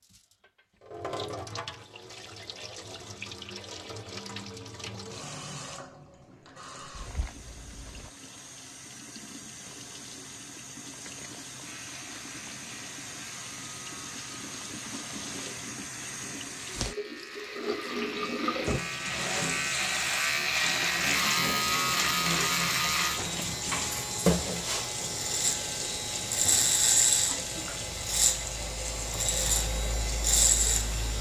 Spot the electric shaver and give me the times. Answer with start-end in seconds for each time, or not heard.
11.6-31.1.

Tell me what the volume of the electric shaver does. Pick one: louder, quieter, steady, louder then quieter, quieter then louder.
louder.